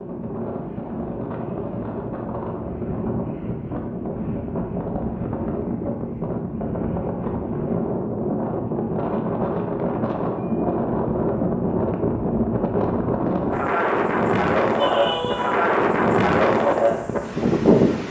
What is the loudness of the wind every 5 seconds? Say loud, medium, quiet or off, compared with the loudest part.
medium, medium, loud, loud.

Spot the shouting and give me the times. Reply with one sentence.
The shouting can be heard from 14.8 to 15.7 s.